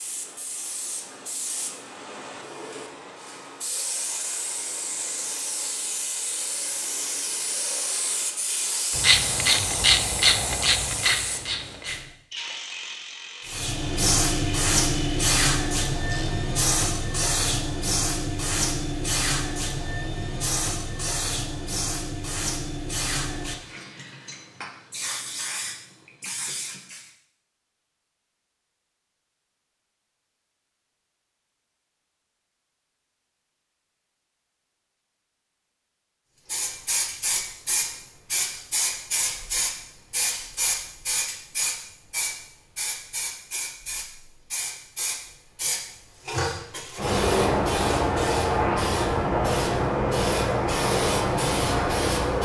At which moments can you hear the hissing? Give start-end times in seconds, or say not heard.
0.0-12.1, 13.4-27.1, 36.5-52.4.